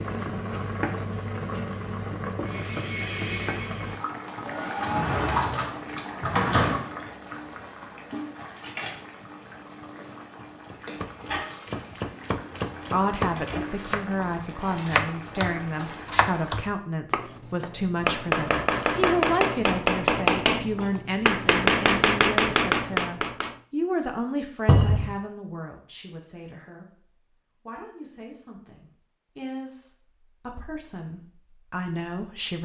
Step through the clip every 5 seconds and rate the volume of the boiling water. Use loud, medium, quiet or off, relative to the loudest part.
loud, medium, medium, medium, off, off, off.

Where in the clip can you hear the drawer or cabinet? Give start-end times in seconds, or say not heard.
4.8-6.8, 24.6-25.1.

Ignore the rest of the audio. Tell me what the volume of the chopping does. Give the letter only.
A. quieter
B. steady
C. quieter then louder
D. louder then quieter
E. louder
E.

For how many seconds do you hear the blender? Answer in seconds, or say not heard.
3 s.